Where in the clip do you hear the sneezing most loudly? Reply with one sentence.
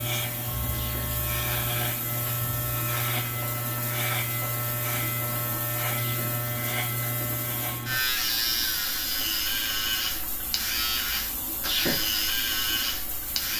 The volume of the sneezing peaks at 12 seconds.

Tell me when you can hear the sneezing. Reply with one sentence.
You can hear the sneezing from 0.7 to 1.1 s, from 5.8 to 6.3 s and from 11.6 to 12.0 s.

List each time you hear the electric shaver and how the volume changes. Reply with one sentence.
You can hear the electric shaver from 0.0 to 13.5 s, at a steady volume.